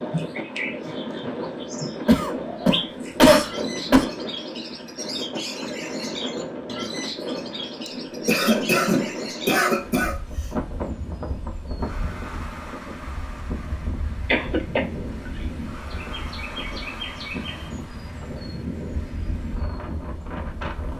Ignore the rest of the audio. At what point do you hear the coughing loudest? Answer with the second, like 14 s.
3 s.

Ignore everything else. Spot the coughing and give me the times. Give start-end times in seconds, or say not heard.
2.0-4.0, 7.8-10.2, 14.2-14.8.